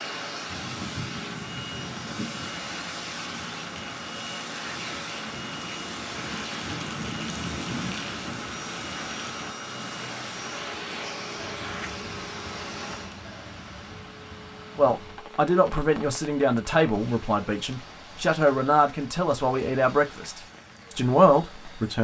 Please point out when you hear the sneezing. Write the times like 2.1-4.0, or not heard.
not heard.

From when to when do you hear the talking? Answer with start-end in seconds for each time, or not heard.
14.8-21.9.